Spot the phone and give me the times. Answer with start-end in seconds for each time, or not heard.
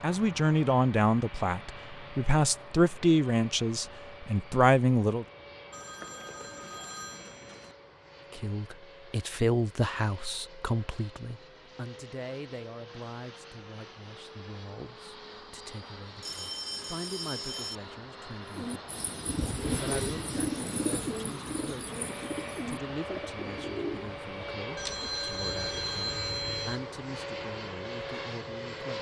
5.7-7.8, 16.2-17.8, 24.8-26.8.